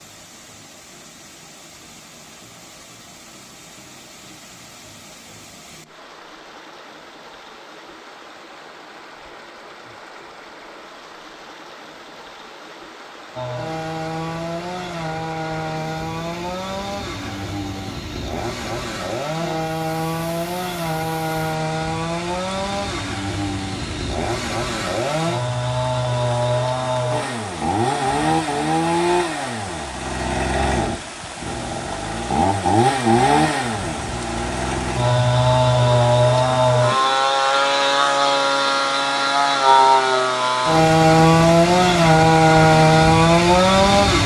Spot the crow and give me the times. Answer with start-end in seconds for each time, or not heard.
not heard.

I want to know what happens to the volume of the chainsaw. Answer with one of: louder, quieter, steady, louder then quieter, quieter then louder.
louder.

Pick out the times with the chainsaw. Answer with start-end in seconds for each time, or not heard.
13.3-44.2.